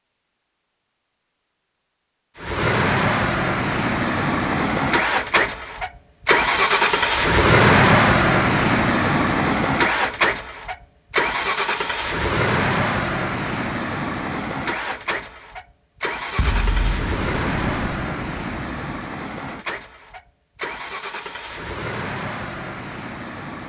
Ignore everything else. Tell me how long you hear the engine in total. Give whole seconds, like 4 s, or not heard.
21 s.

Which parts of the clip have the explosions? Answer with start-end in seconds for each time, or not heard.
16.4-19.0.